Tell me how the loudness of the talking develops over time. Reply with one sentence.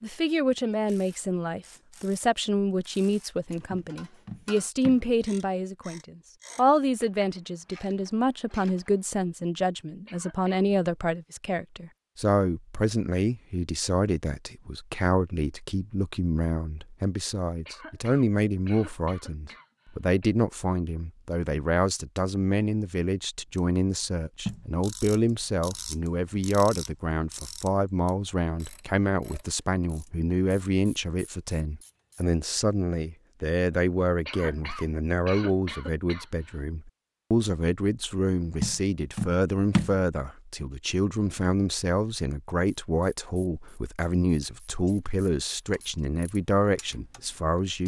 The loudness of the talking stays about the same.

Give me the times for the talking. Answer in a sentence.
The talking can be heard from 0.0 to 47.8 s.